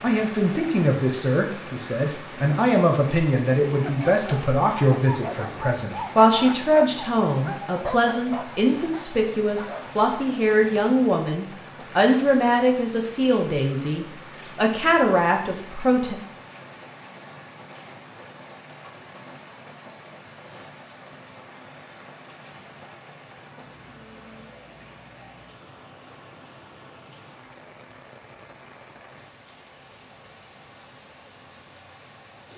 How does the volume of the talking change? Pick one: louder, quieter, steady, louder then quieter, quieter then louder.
steady.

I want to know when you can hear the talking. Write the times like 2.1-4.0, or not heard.
0.0-16.1.